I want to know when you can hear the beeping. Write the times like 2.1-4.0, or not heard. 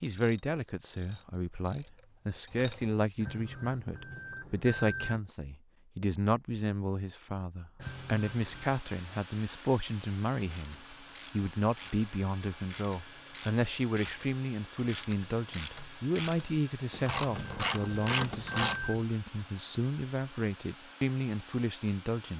3.2-5.2, 7.8-8.8, 17.0-19.1.